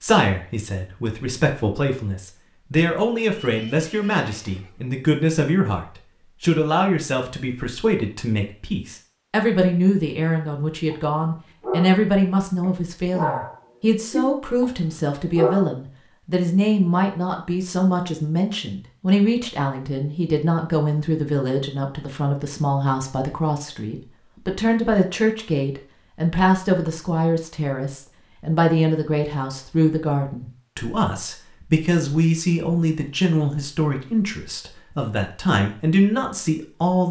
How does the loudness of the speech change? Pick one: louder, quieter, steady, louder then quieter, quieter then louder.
steady.